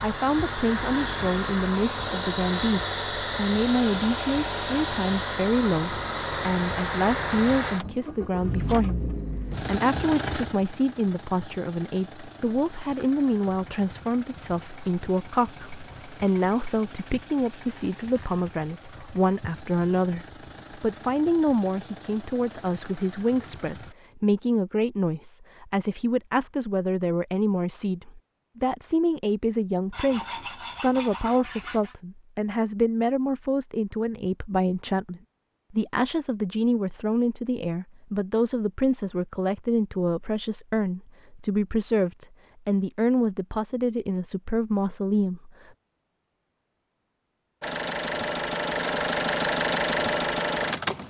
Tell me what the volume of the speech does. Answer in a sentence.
The volume of the speech stays about the same.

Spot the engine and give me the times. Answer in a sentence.
The engine can be heard from 0.0 to 23.9 s and from 47.6 to 51.0 s.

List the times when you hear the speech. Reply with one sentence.
The speech can be heard from 0.0 to 45.5 s.